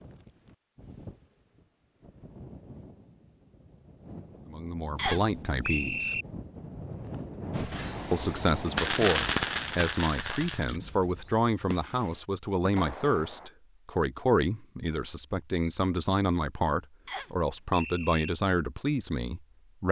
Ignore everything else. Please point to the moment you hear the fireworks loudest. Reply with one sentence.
The volume of the fireworks peaks at 9 seconds.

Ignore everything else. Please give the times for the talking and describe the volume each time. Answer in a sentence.
You can hear the talking briefly from 4.5 to 6.2 s; and from 8.1 to 19.8 s, at a steady volume.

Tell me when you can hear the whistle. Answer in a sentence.
The whistle can be heard from 5.0 to 6.2 s and from 17.1 to 18.3 s.